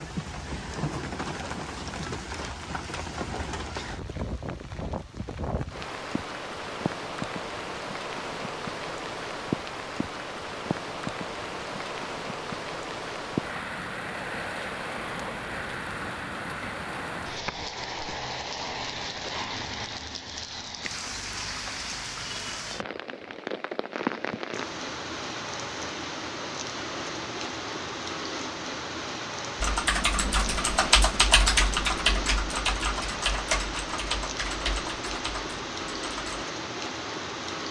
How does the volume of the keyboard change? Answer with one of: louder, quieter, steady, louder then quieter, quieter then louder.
quieter.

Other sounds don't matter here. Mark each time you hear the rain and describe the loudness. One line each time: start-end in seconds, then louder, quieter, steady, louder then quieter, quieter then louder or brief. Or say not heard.
0.0-37.6 steady.